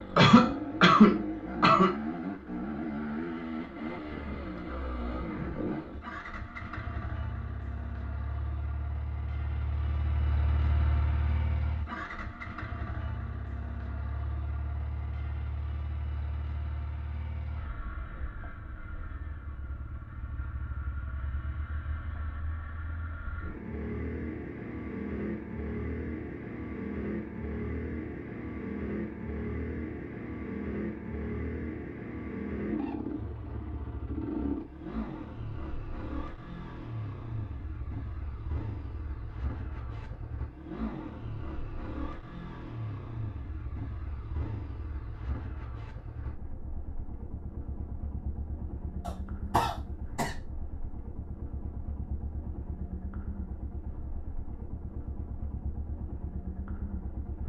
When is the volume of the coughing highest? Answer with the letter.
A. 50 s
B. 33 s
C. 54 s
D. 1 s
D.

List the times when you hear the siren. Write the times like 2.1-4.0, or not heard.
not heard.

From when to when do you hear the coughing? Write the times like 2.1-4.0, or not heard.
0.1-1.9, 49.0-50.3.